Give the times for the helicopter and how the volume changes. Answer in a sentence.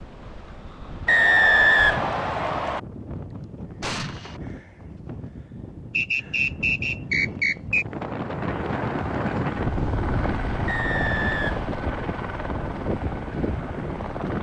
The helicopter can be heard from 8.3 to 14.3 s, at a steady volume.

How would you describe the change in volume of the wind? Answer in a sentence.
The loudness of the wind goes up, then down.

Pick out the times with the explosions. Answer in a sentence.
The explosions can be heard from 3.8 to 4.4 s.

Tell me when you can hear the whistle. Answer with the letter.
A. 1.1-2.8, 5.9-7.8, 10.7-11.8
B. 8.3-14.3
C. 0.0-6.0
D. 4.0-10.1
A.